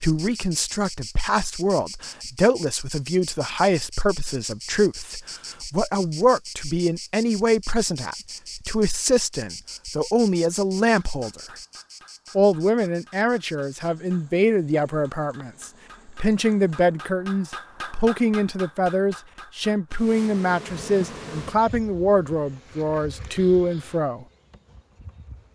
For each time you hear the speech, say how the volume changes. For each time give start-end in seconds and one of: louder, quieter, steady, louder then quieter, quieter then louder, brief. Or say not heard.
0.0-11.6 steady
12.3-24.2 steady.